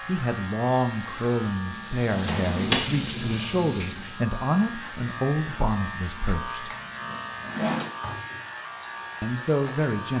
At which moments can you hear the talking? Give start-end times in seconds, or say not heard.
0.1-6.7, 9.2-10.1.